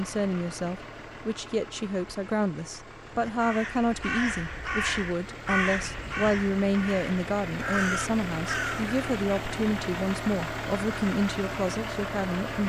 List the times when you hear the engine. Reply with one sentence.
You can hear the engine from 0.0 to 12.6 s.